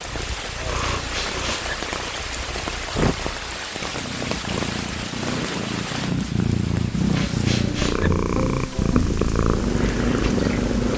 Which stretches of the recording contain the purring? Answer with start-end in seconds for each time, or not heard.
0.0-10.9.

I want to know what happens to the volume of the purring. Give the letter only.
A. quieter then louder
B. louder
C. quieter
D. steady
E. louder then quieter
B.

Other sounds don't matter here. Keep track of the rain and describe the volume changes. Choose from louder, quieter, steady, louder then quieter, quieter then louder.
quieter.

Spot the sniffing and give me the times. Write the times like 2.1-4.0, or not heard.
0.8-1.8, 7.1-8.1.